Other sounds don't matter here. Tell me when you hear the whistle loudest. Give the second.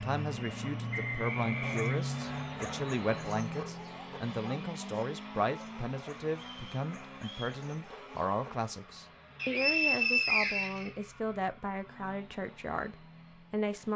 10 s.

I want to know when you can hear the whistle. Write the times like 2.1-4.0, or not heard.
0.9-2.5, 6.3-7.6, 9.3-10.9.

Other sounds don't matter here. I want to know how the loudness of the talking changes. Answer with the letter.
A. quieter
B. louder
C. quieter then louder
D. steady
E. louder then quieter
D.